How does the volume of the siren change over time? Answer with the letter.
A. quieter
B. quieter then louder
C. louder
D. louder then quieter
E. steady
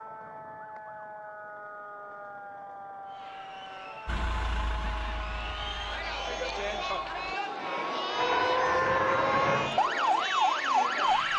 C.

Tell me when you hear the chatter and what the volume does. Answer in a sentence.
The chatter can be heard from 3.0 to 11.3 s, getting louder.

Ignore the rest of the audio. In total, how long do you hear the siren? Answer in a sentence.
The siren can be heard for 11 seconds in total.